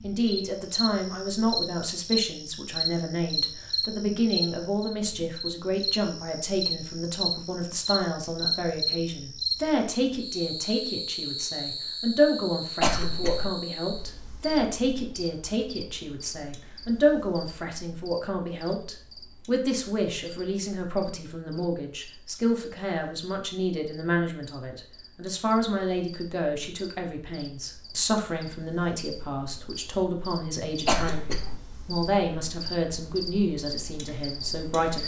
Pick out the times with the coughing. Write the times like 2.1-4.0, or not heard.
12.8-13.5, 30.9-31.6.